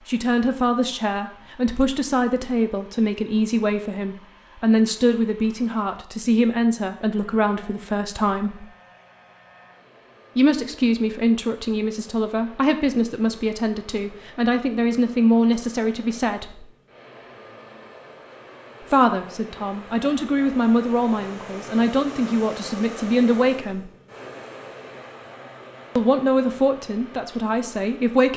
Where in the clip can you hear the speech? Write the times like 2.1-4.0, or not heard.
0.1-8.7, 10.3-16.6, 18.8-23.9, 25.9-28.3.